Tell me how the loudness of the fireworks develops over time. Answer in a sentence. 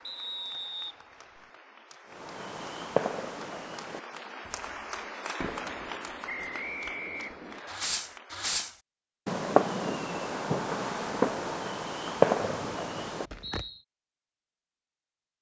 The volume of the fireworks goes down, then up.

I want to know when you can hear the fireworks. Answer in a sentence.
The fireworks can be heard from 2.1 to 13.7 s.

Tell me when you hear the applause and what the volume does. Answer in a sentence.
The applause can be heard from 0.0 to 8.5 s, getting louder then quieter.